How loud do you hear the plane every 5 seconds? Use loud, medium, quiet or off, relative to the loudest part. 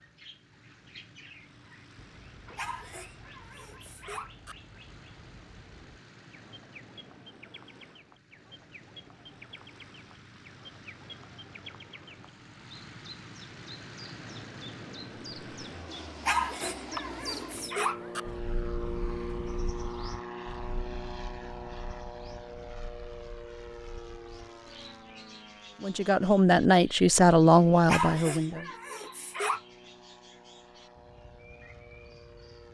quiet, quiet, medium, loud, loud, quiet, quiet.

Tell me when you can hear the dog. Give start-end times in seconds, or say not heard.
2.5-4.5, 16.2-18.2, 27.9-29.6.